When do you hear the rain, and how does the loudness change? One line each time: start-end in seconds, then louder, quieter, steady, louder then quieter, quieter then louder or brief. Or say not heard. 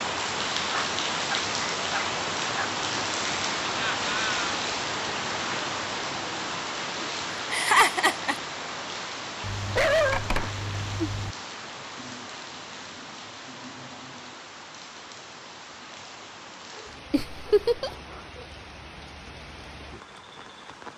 0.0-20.9 quieter.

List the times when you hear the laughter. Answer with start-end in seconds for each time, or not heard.
3.6-4.5, 7.5-8.3, 17.1-17.9.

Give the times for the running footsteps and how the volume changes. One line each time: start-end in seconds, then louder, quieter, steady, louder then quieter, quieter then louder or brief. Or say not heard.
not heard.